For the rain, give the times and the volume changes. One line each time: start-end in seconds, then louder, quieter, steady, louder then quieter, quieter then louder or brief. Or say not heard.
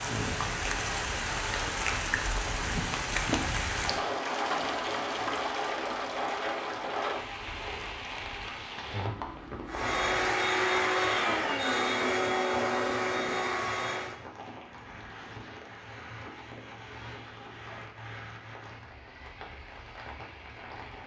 0.0-21.0 quieter.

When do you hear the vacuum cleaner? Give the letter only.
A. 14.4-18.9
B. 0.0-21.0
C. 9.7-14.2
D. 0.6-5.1
C.